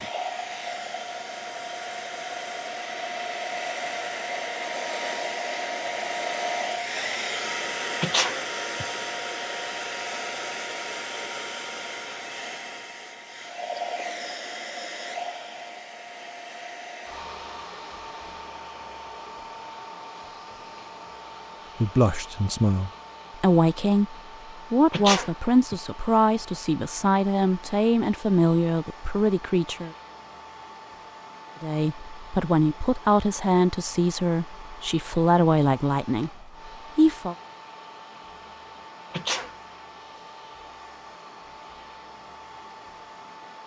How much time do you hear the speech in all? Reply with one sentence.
You can hear the speech for 14 seconds altogether.